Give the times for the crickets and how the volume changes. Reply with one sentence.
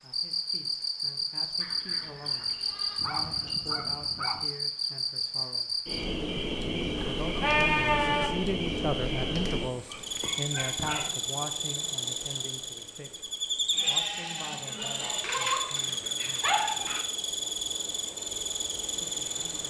The crickets can be heard from 0.0 to 19.6 s, at a steady volume.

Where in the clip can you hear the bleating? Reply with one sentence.
You can hear the bleating from 1.6 to 3.5 s, from 7.0 to 8.3 s and from 13.7 to 15.2 s.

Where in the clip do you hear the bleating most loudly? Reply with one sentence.
The volume of the bleating peaks at 8 seconds.